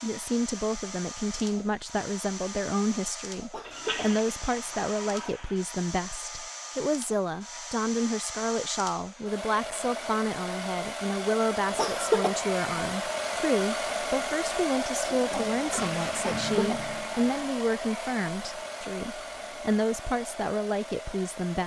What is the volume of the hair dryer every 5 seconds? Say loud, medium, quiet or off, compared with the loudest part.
medium, medium, loud, loud, medium.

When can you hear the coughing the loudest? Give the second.
12 s.